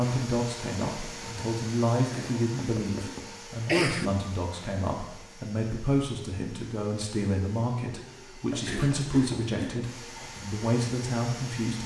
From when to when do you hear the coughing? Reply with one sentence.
The coughing can be heard from 2.1 to 4.1 s and from 8.7 to 9.9 s.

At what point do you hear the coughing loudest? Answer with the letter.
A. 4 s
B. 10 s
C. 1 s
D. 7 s
A.